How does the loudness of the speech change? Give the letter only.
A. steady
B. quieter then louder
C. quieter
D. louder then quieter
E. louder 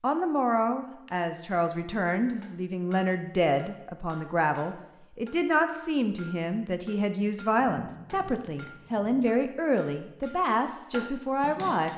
A.